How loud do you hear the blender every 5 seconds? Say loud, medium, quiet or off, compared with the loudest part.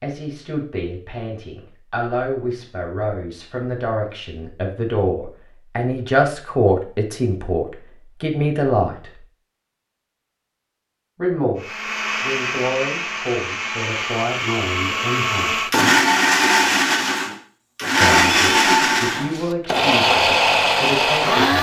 off, off, medium, loud, loud.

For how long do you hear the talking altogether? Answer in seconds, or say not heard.
17 s.